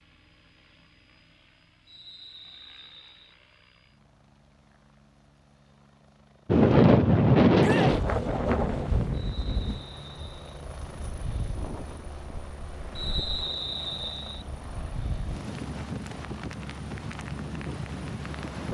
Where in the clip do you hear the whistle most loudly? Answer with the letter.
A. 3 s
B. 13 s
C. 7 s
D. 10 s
B.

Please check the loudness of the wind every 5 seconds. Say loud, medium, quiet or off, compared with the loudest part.
off, loud, quiet, quiet.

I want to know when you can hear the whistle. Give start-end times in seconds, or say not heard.
1.9-3.4, 9.1-10.6, 12.9-14.4.